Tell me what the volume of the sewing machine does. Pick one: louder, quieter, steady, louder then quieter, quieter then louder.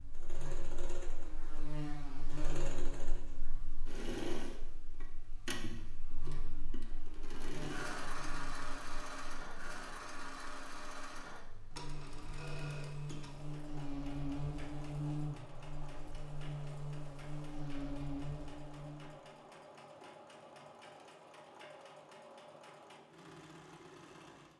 quieter.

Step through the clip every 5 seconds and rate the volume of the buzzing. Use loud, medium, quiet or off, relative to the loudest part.
medium, medium, loud, loud, off.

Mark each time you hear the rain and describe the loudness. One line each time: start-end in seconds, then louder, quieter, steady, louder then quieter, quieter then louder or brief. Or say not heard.
not heard.